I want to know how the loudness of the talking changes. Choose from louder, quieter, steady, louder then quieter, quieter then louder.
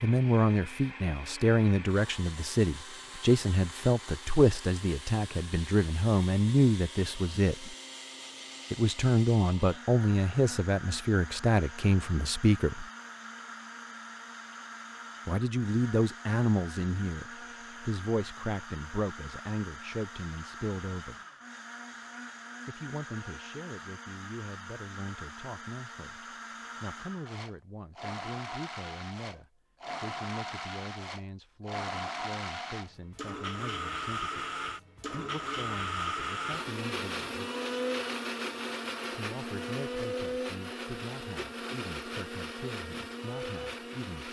quieter.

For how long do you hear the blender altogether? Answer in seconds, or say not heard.
44 s.